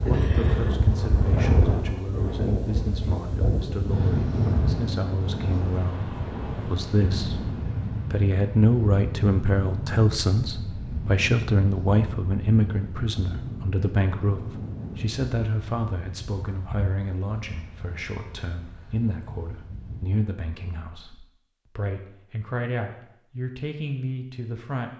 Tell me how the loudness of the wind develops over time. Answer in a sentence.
The loudness of the wind goes down.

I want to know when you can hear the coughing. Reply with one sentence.
The coughing can't be heard in this clip.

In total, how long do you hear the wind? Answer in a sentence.
The wind can be heard for 20 seconds in total.